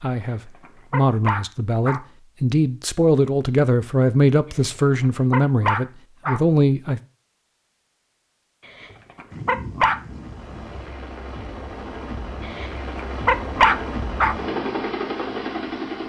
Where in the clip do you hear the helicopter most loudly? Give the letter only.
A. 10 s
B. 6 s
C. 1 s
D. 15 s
D.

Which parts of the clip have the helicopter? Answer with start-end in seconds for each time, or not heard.
10.0-16.0.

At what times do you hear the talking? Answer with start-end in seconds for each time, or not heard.
0.0-7.0.